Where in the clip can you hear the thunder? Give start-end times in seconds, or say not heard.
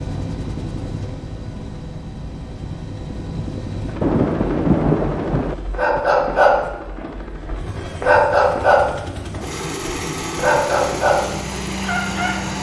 4.0-6.0.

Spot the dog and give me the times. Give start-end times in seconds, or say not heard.
5.7-12.3.